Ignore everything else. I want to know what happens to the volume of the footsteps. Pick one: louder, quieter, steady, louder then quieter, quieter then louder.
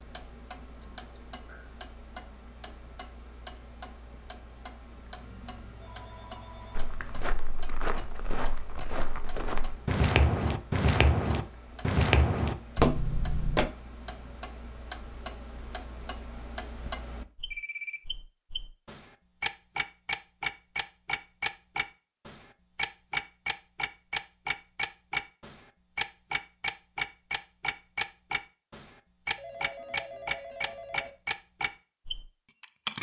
louder.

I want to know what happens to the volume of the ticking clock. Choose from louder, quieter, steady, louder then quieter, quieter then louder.
louder.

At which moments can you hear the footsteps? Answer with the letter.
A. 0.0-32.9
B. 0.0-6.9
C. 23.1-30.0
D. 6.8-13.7
D.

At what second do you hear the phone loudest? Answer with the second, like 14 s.
18 s.